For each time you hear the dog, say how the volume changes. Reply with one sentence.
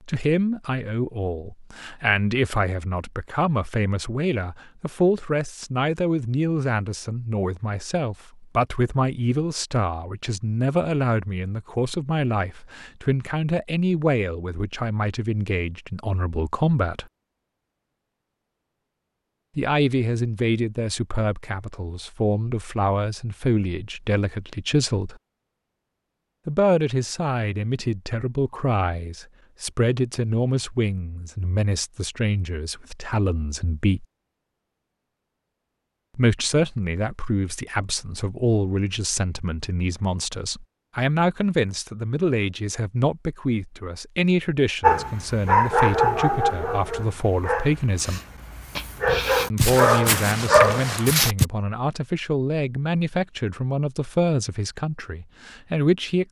The dog can be heard from 44.8 to 51.5 s, getting quieter then louder.